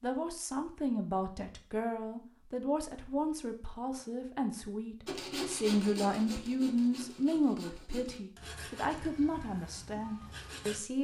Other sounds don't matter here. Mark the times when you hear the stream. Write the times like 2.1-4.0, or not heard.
not heard.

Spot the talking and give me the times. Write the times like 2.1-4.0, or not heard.
0.0-10.9.